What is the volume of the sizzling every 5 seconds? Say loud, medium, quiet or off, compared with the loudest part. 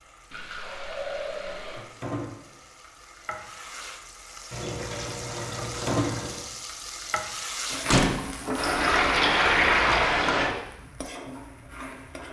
medium, loud, medium.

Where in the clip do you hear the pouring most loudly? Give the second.
10 s.